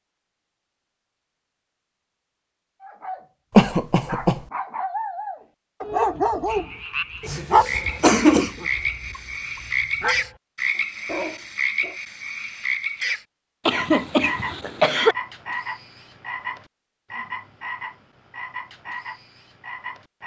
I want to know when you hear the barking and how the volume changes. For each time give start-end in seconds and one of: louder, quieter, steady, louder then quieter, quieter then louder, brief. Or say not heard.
2.8-3.2 brief
4.0-12.0 louder then quieter.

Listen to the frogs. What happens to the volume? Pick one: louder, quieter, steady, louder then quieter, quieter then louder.
quieter.